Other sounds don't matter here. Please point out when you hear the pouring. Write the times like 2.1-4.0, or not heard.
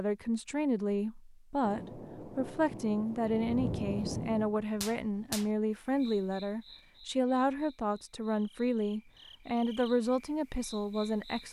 not heard.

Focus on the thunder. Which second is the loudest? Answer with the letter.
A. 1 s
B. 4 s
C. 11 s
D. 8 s
B.